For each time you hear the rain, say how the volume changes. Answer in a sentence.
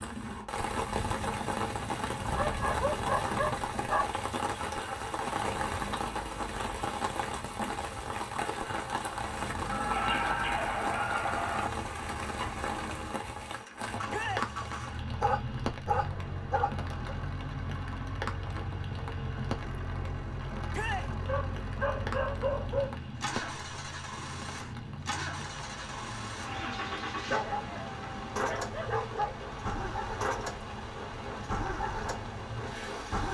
You can hear the rain from 0.0 to 33.3 s, getting quieter.